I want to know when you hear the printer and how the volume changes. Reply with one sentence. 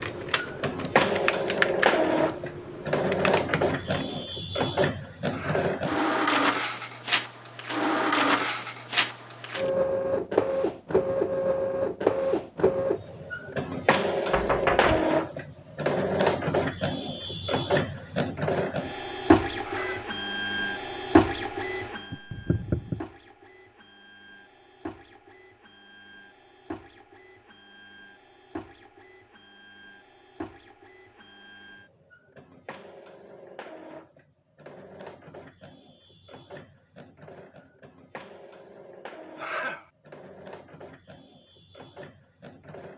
The printer can be heard from 0.0 to 42.9 s, getting quieter.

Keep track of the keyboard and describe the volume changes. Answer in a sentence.
The volume of the keyboard goes up, then down.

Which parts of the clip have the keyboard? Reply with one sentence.
The keyboard can be heard from 0.0 to 4.2 s.